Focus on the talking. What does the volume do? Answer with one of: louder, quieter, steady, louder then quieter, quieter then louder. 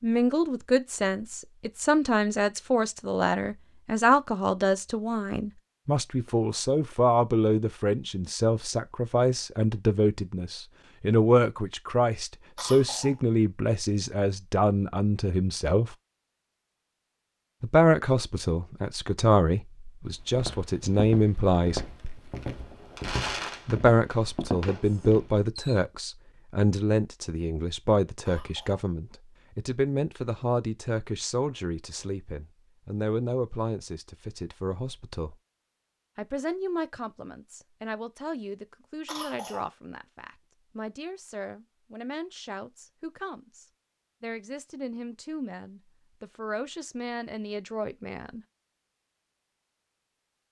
quieter.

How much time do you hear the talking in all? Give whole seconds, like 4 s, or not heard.
44 s.